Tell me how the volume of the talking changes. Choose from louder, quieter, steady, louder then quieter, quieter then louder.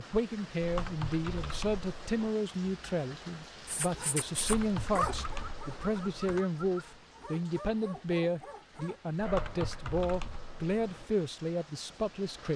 steady.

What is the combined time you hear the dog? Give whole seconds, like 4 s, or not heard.
6 s.